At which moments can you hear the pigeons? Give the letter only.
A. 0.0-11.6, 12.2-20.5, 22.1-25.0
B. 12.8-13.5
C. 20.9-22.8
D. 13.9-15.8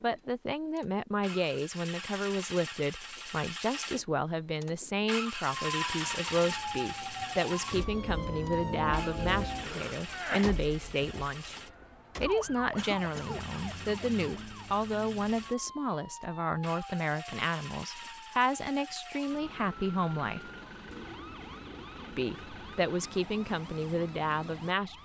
C.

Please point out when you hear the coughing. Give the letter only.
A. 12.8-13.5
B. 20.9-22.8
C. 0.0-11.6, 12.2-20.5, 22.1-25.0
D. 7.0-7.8
A.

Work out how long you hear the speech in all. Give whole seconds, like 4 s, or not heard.
23 s.